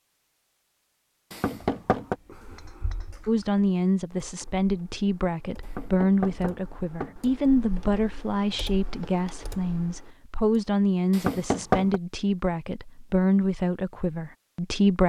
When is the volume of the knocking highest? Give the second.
12 s.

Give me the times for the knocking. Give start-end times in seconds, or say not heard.
1.3-2.1, 5.6-7.2, 11.1-12.0.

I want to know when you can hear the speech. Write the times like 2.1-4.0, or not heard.
3.2-15.0.